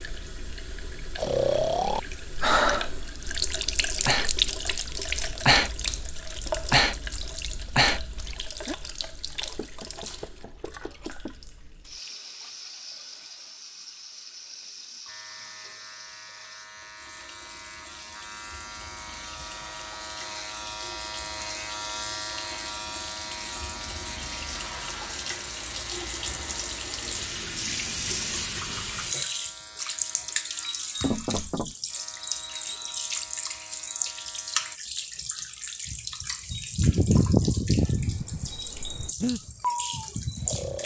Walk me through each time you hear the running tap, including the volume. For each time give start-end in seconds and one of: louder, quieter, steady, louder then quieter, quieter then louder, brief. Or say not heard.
0.0-40.8 quieter then louder.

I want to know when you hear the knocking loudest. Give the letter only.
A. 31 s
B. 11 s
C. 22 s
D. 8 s
A.